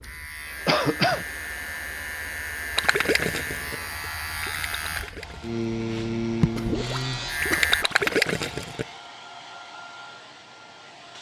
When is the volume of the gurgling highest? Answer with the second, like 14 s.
8 s.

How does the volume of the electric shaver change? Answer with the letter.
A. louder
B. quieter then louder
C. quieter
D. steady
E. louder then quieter
A.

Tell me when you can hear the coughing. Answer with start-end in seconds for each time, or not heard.
0.7-1.2, 6.4-8.2.